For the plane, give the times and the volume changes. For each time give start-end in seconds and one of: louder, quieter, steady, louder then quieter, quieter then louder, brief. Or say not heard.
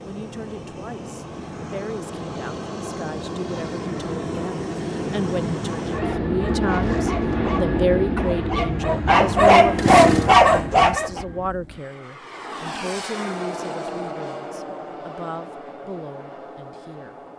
0.0-17.3 louder then quieter.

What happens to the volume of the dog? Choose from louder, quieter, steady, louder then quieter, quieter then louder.
louder.